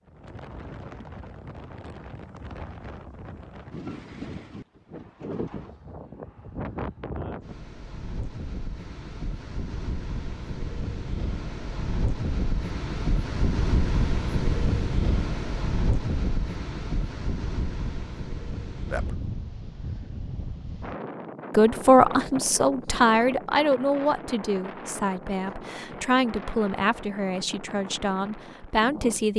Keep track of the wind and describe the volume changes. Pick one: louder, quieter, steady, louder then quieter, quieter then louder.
louder then quieter.